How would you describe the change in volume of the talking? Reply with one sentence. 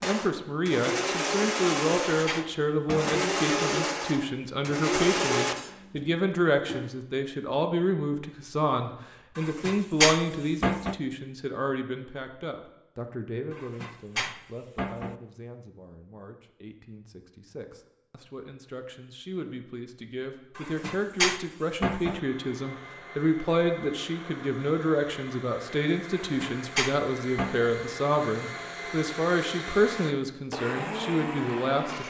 The loudness of the talking goes down, then up.